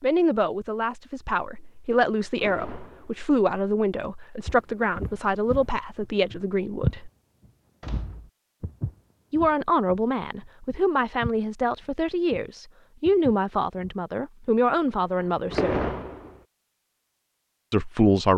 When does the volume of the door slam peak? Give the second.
16 s.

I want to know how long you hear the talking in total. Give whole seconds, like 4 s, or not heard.
14 s.